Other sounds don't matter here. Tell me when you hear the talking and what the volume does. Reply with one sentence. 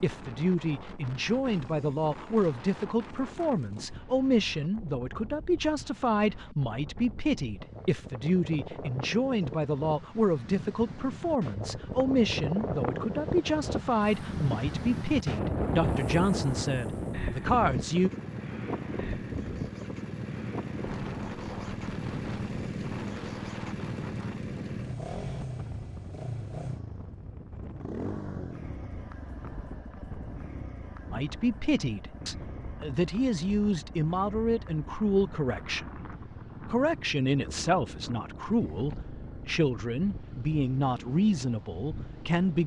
You can hear the talking from 0.0 to 18.1 s, at a steady volume; and from 31.1 to 42.6 s, at a steady volume.